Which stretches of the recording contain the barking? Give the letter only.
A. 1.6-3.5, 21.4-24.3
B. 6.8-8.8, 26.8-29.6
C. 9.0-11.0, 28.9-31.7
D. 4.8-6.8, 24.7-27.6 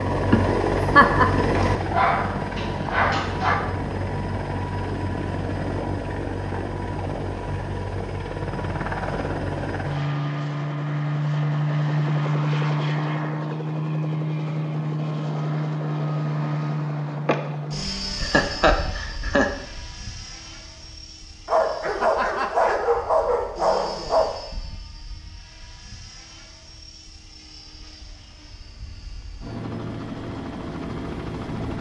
A.